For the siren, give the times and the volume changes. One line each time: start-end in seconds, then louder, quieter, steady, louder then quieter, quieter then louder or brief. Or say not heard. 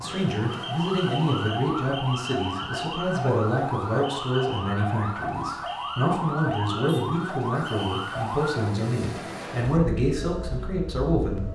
0.0-11.4 quieter.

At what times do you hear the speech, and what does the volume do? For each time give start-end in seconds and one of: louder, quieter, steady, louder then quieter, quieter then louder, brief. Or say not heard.
0.0-11.4 steady.